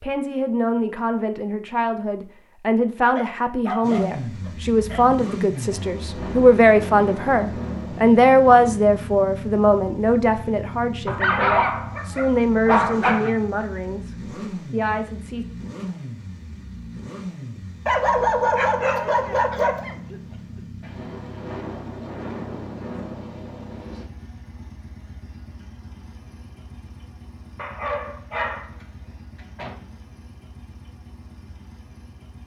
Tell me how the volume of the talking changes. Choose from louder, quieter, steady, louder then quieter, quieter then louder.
louder then quieter.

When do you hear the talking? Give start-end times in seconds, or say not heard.
0.0-15.4.